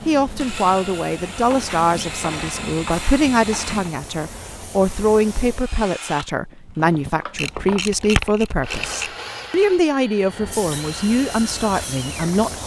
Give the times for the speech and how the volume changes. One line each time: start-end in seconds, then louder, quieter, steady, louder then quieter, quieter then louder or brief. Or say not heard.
0.1-12.6 steady.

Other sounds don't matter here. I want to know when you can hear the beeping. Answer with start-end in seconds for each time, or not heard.
not heard.